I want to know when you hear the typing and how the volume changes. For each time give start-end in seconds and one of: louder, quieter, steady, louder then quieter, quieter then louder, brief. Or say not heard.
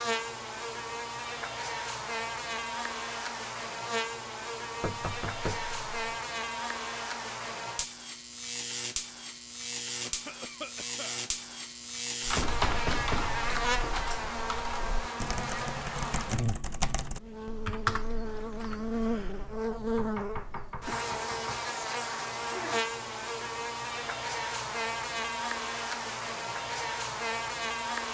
12.2-19.5 quieter then louder.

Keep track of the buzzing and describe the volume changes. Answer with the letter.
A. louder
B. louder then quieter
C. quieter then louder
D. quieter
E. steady
E.